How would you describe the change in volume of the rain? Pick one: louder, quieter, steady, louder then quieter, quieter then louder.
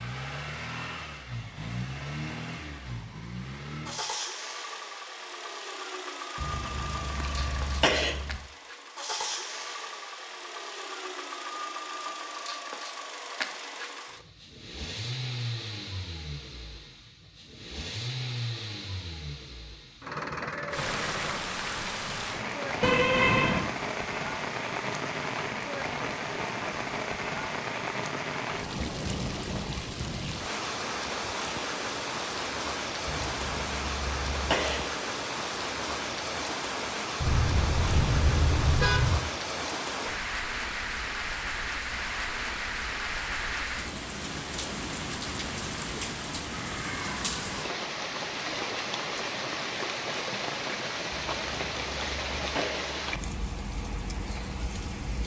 steady.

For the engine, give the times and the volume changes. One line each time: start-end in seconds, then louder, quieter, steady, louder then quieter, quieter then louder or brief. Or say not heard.
0.0-21.4 steady.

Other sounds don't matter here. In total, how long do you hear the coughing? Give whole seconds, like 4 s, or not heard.
6 s.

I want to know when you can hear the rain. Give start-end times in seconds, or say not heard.
20.7-55.2.